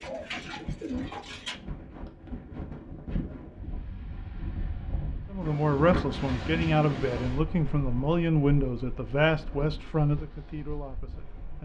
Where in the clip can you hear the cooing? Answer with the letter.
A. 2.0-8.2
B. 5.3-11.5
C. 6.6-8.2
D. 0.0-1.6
D.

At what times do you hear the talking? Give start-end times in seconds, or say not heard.
5.3-11.5.